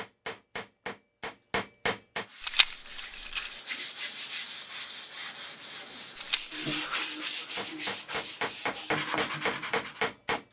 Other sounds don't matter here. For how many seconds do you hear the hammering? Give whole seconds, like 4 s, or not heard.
5 s.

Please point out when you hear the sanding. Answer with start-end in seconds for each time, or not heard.
2.2-10.1.